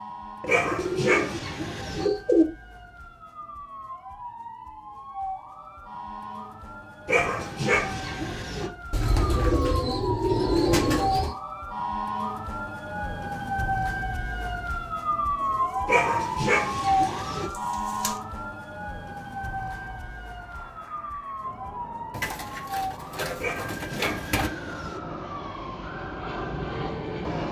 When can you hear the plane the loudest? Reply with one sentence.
The loudest moment of the plane is at 27 seconds.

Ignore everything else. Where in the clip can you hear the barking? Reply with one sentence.
The barking can be heard from 0.5 to 2.0 s, from 7.0 to 8.7 s, from 15.8 to 17.5 s and from 23.4 to 25.0 s.